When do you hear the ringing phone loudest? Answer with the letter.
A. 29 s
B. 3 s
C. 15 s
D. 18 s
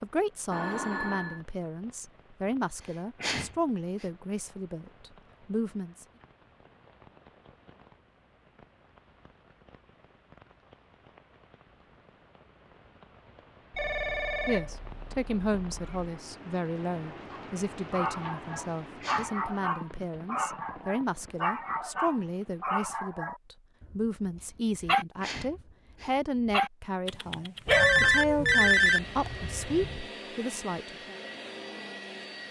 A.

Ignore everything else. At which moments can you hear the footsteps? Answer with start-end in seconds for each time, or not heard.
not heard.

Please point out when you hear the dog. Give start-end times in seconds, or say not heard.
17.3-28.7.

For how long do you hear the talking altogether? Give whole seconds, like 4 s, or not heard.
23 s.